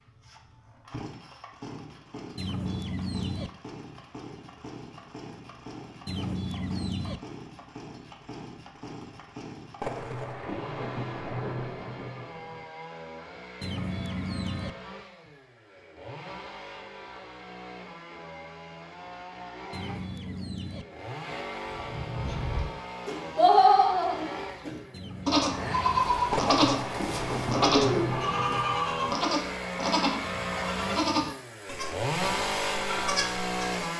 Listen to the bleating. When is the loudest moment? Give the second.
24 s.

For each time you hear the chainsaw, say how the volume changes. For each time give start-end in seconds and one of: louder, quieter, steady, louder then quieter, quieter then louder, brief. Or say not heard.
0.0-33.9 louder.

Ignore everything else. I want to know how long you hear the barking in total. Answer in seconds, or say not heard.
not heard.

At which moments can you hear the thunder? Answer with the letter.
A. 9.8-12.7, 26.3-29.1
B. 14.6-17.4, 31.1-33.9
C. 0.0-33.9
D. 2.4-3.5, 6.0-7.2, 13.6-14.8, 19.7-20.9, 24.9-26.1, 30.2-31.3
A.